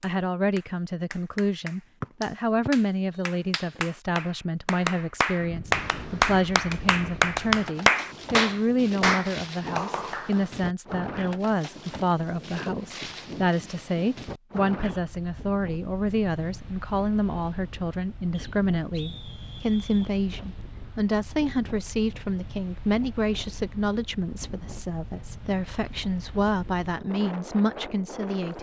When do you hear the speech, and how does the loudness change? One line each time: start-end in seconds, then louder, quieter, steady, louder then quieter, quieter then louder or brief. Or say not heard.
0.0-28.5 steady.